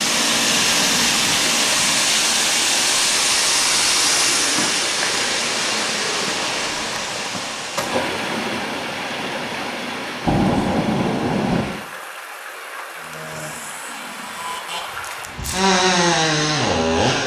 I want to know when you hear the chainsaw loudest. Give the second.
16 s.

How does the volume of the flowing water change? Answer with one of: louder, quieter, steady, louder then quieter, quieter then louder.
quieter.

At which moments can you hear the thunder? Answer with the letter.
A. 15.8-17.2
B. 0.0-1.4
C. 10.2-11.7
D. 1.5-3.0
C.